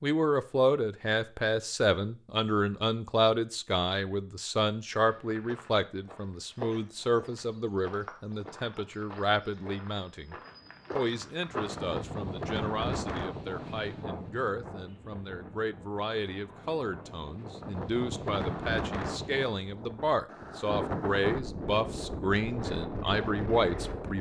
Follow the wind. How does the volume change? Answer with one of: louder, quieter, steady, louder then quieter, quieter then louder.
quieter then louder.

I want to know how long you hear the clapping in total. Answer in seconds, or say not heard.
not heard.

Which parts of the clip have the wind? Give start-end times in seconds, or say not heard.
11.4-24.1.